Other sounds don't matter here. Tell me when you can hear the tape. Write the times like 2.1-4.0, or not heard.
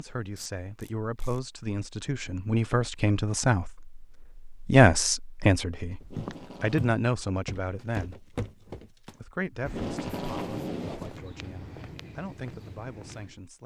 0.3-1.4, 6.0-7.0, 9.6-11.2.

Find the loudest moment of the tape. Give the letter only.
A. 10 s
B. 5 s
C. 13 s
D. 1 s
A.